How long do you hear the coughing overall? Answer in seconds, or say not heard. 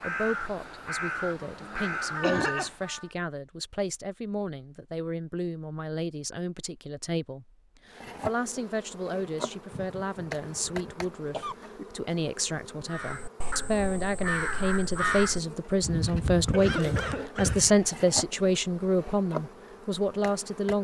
4 s.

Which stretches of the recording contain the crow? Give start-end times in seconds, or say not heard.
0.0-3.1, 12.8-17.8.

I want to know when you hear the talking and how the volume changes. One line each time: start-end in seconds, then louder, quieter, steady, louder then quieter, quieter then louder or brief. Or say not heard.
0.0-20.7 louder.